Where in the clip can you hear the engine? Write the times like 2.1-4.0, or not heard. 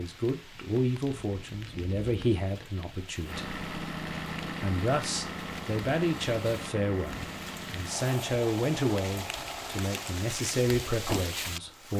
3.2-11.9.